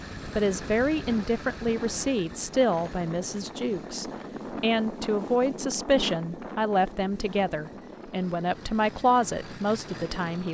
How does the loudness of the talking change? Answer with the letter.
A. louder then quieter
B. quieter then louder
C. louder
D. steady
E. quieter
D.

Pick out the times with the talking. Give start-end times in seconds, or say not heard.
0.2-10.5.